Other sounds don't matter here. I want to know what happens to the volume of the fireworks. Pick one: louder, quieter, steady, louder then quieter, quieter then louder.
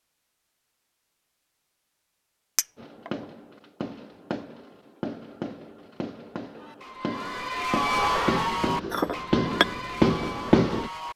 louder.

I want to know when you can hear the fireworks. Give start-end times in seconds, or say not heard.
2.8-10.9.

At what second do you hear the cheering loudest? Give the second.
8 s.